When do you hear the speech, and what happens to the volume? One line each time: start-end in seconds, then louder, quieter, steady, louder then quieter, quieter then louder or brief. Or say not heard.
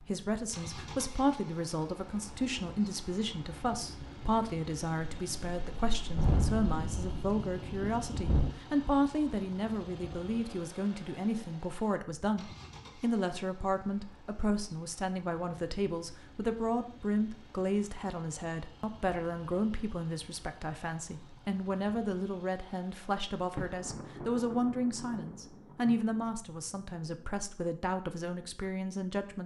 0.0-29.4 steady.